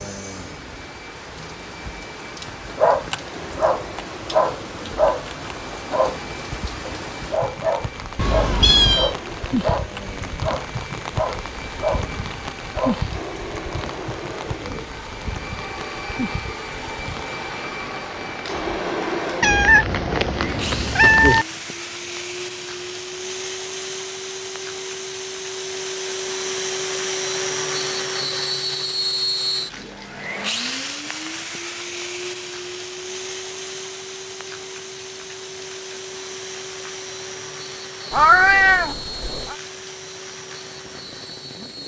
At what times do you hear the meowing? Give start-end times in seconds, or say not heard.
8.2-9.2, 19.4-21.4, 38.1-39.5.